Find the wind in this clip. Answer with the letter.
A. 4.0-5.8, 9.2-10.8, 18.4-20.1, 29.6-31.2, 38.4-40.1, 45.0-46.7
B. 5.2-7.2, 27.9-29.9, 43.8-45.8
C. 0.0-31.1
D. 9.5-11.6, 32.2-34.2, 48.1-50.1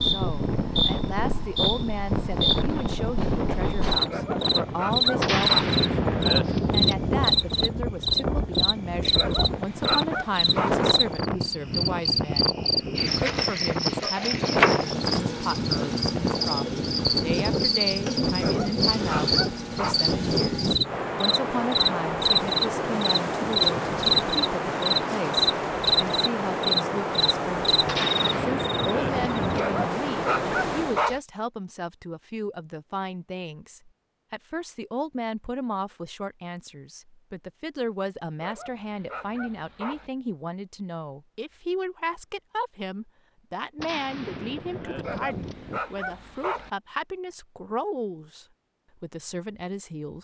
C.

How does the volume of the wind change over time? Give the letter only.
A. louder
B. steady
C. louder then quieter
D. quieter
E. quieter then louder
B.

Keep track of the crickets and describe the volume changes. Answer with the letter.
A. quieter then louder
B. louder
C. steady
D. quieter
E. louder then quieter
C.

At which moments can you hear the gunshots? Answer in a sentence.
The gunshots can be heard from 5.2 to 7.2 s, from 27.9 to 29.9 s and from 43.8 to 45.8 s.